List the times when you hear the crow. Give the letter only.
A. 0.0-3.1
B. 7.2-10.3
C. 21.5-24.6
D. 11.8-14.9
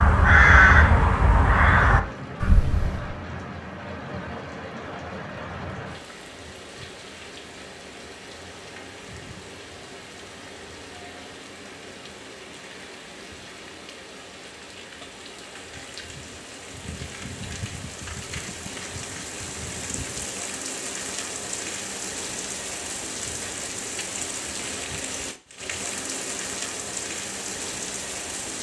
A.